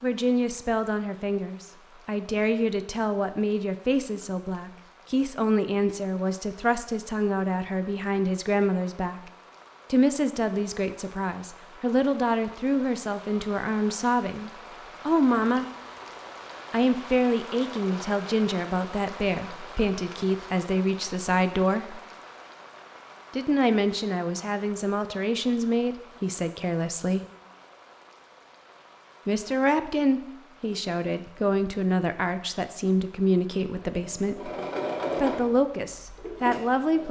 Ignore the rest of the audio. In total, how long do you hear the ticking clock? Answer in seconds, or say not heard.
not heard.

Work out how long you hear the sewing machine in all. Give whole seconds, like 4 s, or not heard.
3 s.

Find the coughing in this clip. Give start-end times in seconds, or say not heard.
not heard.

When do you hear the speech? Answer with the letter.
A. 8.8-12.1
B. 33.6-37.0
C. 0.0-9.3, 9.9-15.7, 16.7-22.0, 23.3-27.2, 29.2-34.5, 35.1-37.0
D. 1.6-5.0
C.